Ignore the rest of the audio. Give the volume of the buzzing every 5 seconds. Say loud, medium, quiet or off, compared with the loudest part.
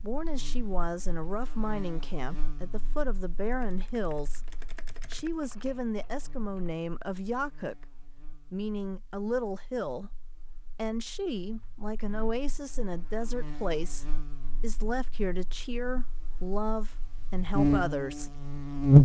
quiet, quiet, quiet, loud.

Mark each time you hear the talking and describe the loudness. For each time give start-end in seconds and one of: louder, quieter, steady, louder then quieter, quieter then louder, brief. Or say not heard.
0.0-18.4 steady.